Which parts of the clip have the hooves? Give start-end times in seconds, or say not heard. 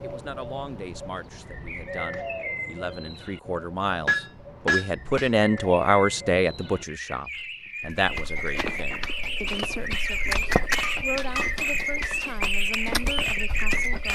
7.8-14.1.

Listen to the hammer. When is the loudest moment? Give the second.
5 s.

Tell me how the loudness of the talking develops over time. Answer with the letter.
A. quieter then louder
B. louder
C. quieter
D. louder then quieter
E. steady
D.